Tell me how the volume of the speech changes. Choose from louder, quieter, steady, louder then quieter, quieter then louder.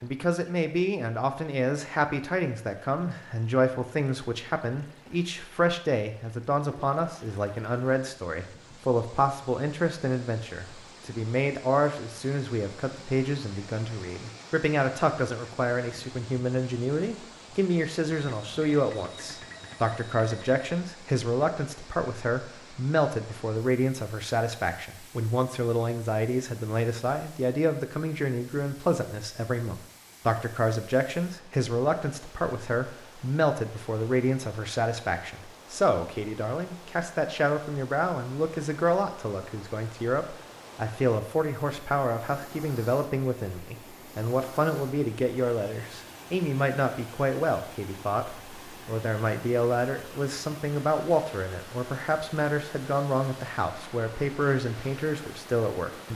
steady.